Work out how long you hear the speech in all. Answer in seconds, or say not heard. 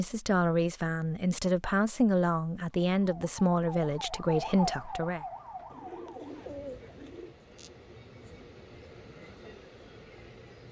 5 s.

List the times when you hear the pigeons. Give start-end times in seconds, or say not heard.
5.7-7.3.